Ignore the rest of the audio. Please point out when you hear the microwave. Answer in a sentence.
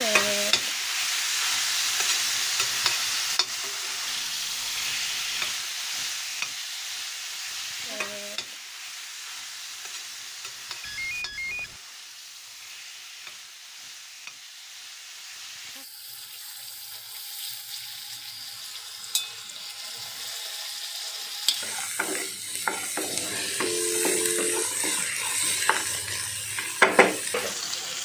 You can't hear the microwave here.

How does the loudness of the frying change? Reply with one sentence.
The loudness of the frying goes down, then up.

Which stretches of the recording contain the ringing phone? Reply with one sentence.
You can hear the ringing phone from 4.0 to 5.5 s, from 10.8 to 11.8 s and from 23.6 to 24.6 s.